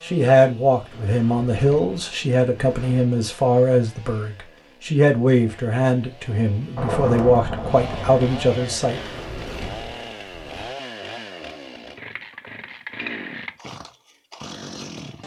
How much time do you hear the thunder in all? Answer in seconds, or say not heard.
2 s.